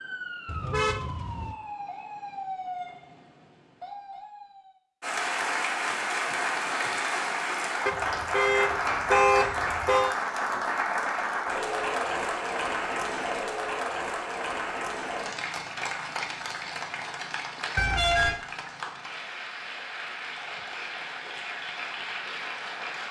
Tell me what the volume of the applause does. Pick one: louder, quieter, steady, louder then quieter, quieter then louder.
quieter.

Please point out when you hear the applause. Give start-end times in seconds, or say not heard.
5.0-23.0.